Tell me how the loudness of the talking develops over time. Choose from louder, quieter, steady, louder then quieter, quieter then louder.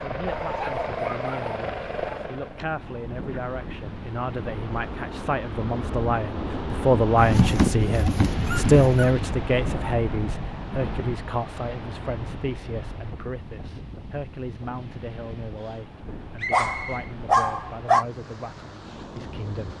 louder then quieter.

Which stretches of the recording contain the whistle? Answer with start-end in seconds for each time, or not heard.
16.4-17.1.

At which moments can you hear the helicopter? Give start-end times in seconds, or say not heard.
0.0-2.6.